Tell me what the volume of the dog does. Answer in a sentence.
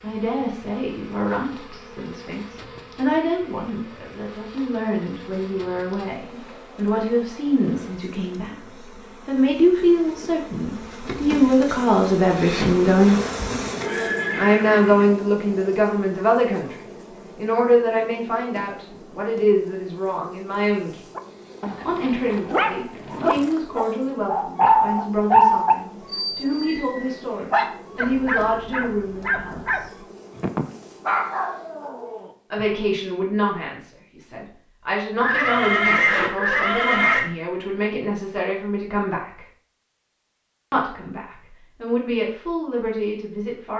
The loudness of the dog goes up, then down.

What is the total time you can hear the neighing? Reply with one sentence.
You can hear the neighing for 3 seconds altogether.